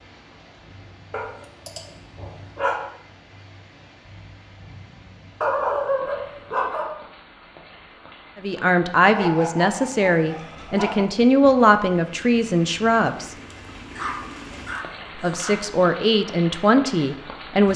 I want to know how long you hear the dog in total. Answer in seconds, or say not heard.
7 s.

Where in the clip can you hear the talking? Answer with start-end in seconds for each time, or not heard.
8.3-13.3, 15.2-17.7.